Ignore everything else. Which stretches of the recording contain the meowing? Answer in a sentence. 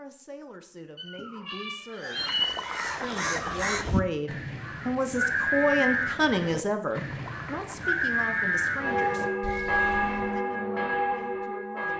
You can hear the meowing from 0.9 to 2.9 s.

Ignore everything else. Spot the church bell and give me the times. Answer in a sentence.
You can hear the church bell from 8.8 to 11.9 s.